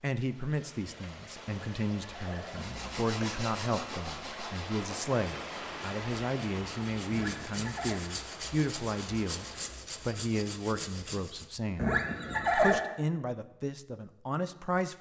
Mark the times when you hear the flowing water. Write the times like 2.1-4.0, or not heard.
0.1-9.7.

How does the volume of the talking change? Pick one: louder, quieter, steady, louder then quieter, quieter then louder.
steady.